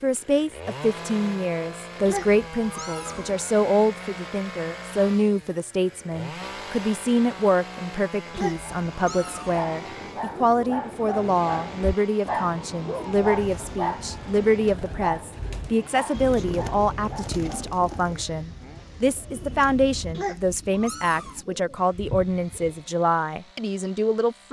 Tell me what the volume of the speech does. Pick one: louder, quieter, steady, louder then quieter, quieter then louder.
steady.